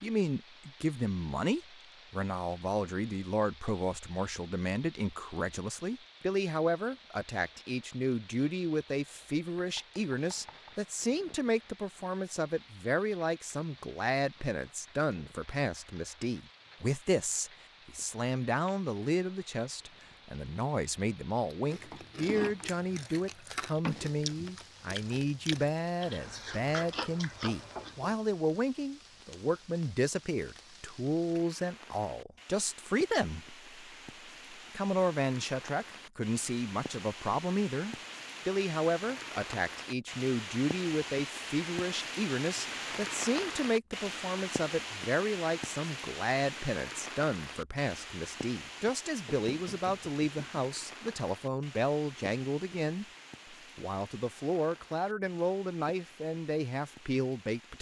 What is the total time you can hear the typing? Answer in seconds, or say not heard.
not heard.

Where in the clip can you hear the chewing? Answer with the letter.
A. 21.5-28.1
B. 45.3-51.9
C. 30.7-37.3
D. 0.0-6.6
A.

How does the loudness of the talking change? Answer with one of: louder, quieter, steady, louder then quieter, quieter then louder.
steady.